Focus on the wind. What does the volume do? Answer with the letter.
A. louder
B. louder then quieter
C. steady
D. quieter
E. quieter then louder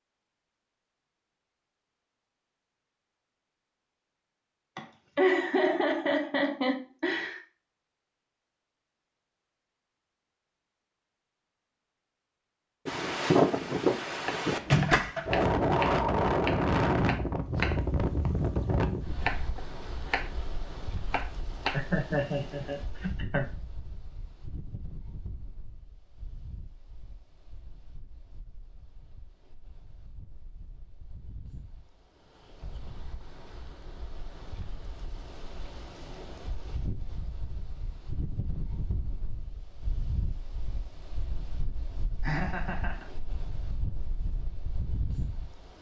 E.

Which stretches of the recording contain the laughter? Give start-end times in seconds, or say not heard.
4.8-7.4, 21.7-23.4, 42.2-43.0.